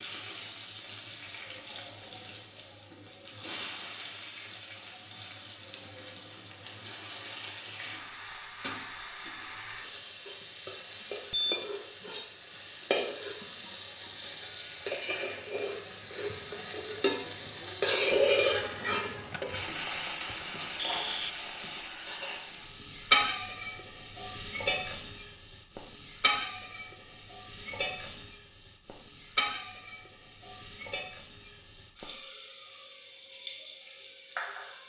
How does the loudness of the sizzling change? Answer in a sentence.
The volume of the sizzling goes up, then down.